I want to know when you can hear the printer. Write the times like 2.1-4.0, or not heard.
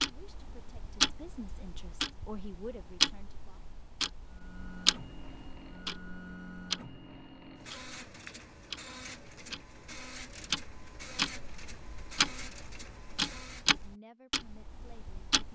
4.2-13.9.